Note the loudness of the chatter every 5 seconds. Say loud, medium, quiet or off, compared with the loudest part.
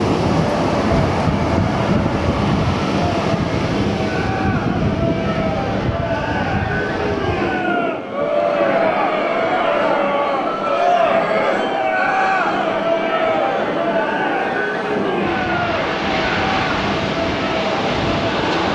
medium, loud, loud, medium.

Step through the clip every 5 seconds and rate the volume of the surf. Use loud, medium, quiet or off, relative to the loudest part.
loud, medium, medium, loud.